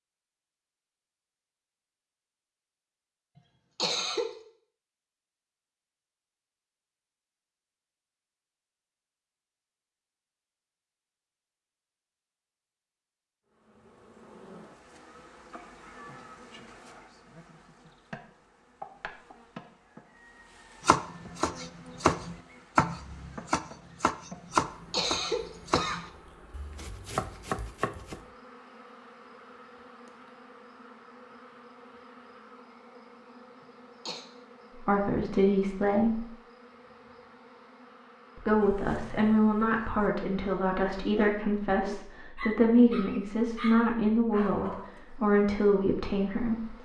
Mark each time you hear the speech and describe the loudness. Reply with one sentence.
The speech can be heard briefly from 34.8 to 36.2 s; and from 38.4 to 46.7 s, at a steady volume.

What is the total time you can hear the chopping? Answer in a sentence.
The chopping can be heard for 7 seconds in total.